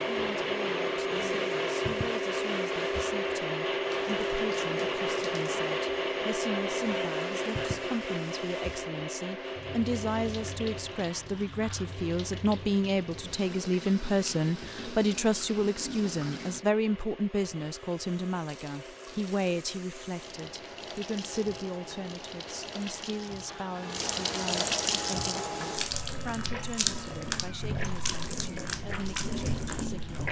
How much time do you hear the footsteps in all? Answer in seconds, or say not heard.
not heard.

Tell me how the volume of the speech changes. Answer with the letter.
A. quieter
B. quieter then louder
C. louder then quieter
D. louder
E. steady
C.